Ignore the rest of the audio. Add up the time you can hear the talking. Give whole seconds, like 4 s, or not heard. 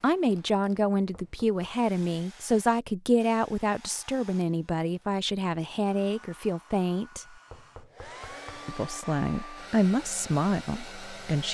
10 s.